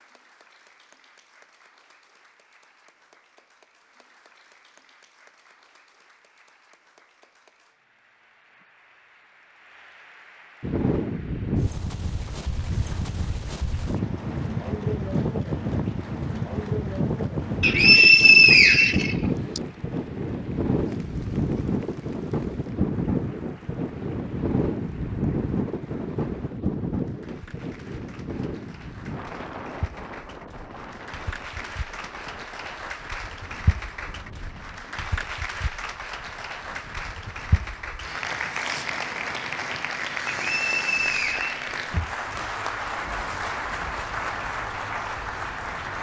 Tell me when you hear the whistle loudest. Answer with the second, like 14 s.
18 s.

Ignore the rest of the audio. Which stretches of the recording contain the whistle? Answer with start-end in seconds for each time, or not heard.
17.6-19.6, 40.2-41.5.